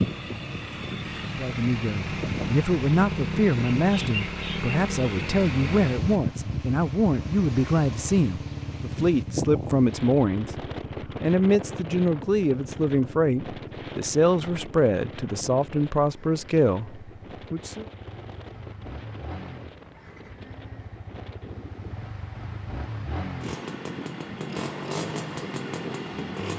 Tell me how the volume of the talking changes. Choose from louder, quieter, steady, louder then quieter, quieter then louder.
steady.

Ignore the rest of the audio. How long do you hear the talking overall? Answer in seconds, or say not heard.
16 s.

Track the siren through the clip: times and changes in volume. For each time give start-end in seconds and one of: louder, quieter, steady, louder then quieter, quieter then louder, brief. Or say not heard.
not heard.